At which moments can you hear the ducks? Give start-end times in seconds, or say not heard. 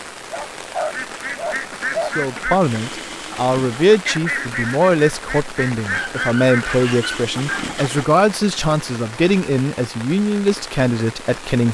0.8-8.1.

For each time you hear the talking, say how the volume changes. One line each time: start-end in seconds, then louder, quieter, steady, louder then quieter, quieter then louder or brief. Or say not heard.
2.0-11.6 steady.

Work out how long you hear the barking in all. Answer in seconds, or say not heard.
4 s.